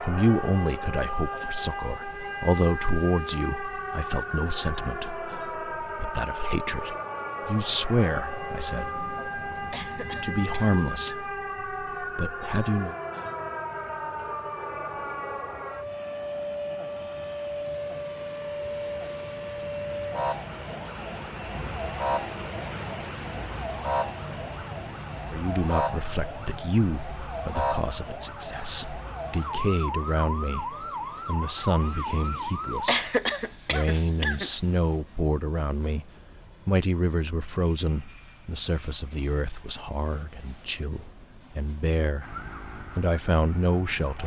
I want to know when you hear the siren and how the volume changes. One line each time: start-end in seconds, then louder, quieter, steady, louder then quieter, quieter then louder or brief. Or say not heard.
0.0-33.0 steady
42.2-44.2 brief.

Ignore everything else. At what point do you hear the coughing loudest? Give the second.
33 s.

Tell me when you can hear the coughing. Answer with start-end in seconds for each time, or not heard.
9.7-11.2, 32.9-34.5.